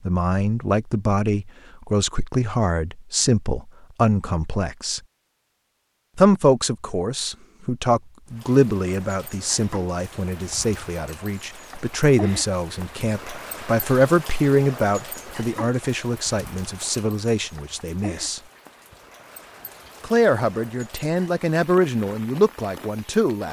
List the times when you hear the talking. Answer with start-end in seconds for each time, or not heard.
0.1-5.0, 6.2-18.4, 20.0-23.4.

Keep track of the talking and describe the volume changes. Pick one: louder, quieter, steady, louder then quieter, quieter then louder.
steady.